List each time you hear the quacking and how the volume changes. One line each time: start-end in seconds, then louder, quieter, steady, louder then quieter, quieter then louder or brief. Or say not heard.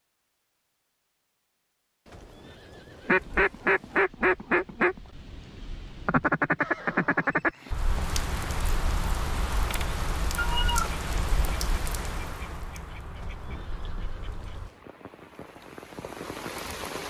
3.0-14.7 quieter.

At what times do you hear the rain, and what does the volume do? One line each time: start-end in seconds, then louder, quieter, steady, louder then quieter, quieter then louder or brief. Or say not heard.
7.6-17.0 quieter then louder.